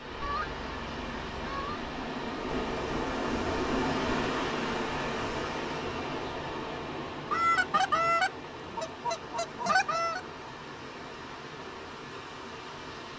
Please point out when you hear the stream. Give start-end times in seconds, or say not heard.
0.0-13.1.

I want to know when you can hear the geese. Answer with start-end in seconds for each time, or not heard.
0.2-1.8, 7.2-10.2.